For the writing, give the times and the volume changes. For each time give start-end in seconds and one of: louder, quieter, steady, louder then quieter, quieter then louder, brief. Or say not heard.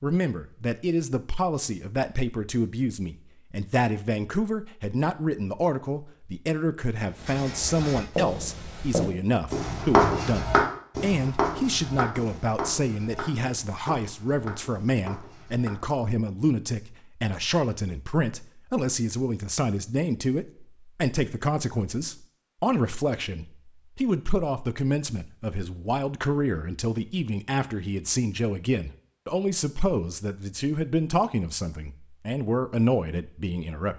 7.1-15.8 louder then quieter.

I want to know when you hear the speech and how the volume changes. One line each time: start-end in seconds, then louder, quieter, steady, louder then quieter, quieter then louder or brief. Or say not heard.
0.0-33.9 steady.